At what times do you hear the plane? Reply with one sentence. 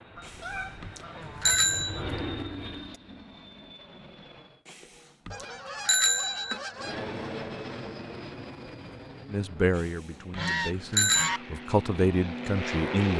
The plane can be heard from 0.0 to 4.7 s and from 6.7 to 13.1 s.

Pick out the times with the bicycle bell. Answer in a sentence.
The bicycle bell can be heard from 0.2 to 2.0 s, from 4.7 to 6.6 s and from 9.8 to 11.3 s.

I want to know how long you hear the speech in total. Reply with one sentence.
The speech can be heard for 4 seconds in total.